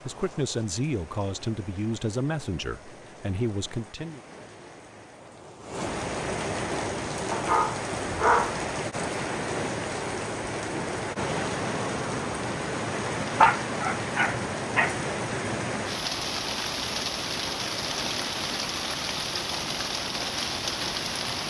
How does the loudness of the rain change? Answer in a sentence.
The loudness of the rain goes up.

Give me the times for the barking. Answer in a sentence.
The barking can be heard from 7.3 to 8.6 s and from 13.4 to 14.9 s.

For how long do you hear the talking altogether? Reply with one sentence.
You can hear the talking for 4 seconds altogether.